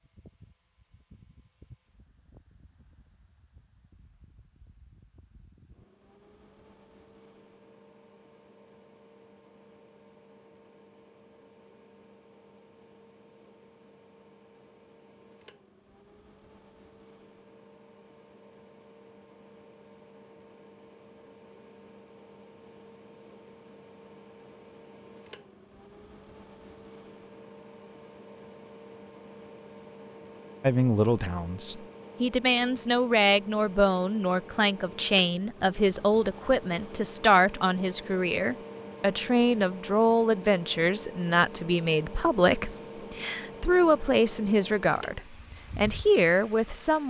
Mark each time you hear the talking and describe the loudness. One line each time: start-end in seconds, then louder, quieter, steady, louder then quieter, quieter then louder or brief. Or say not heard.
30.6-47.0 steady.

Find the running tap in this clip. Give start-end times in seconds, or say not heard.
not heard.